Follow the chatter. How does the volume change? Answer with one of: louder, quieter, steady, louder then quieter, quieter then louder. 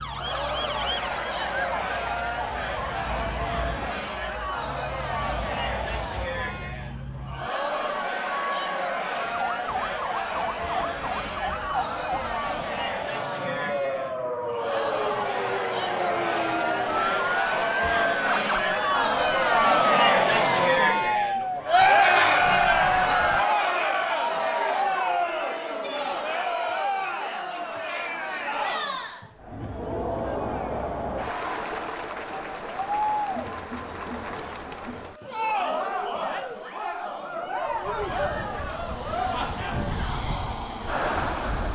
louder then quieter.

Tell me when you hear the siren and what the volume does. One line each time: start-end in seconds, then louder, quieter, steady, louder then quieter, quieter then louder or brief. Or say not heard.
0.0-23.4 louder.